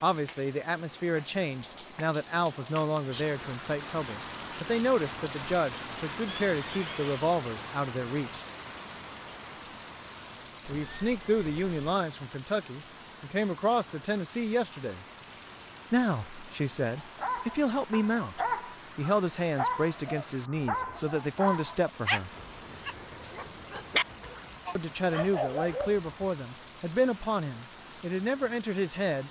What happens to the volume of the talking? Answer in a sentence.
The volume of the talking stays about the same.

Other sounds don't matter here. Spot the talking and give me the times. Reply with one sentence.
You can hear the talking from 0.0 to 8.4 s, from 10.7 to 15.1 s, from 15.9 to 22.3 s and from 24.8 to 29.2 s.